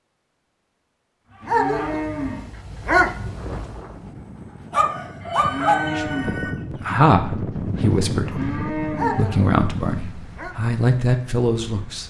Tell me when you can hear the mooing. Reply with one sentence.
You can hear the mooing from 1.4 to 2.5 s, from 5.3 to 6.4 s and from 8.2 to 9.2 s.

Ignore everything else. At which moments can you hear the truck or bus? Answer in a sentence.
The truck or bus can't be heard in this clip.